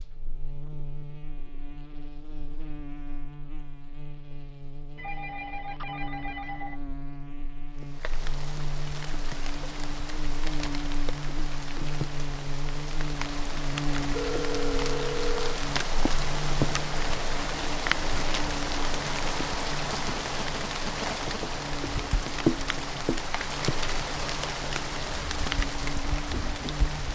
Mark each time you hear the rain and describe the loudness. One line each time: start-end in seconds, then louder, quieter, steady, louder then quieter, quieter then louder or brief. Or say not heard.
7.8-27.1 louder.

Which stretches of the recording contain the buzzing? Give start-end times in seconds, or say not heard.
0.0-27.1.